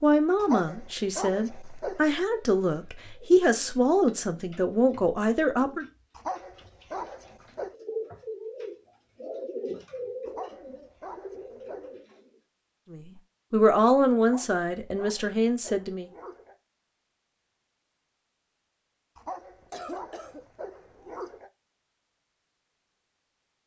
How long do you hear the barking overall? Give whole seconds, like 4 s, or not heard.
10 s.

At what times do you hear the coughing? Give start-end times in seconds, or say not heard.
19.7-20.4.